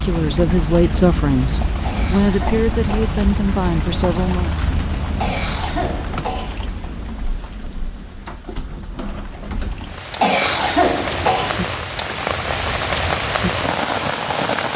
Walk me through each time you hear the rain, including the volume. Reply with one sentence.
The rain can be heard from 0.0 to 14.7 s, getting quieter then louder.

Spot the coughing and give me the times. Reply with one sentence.
You can hear the coughing from 1.8 to 3.2 s, from 5.2 to 6.6 s and from 10.2 to 11.6 s.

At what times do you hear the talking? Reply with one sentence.
The talking can be heard from 0.0 to 4.5 s.